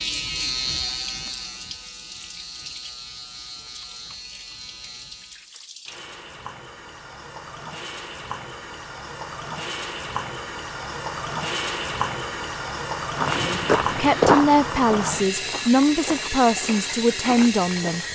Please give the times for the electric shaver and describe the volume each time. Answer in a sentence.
The electric shaver can be heard from 0.0 to 5.5 s, getting quieter.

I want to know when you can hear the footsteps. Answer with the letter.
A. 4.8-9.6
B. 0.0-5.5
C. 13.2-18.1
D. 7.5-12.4
C.